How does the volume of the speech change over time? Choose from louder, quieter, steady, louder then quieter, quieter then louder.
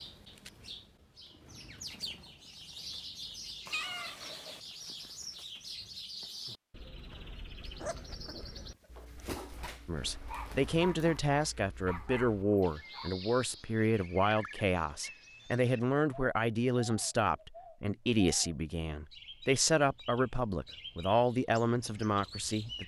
steady.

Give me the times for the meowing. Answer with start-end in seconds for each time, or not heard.
3.6-4.6.